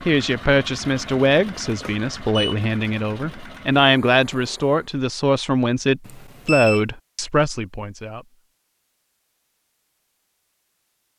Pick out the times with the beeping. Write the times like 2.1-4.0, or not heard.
1.8-2.5, 6.0-6.8.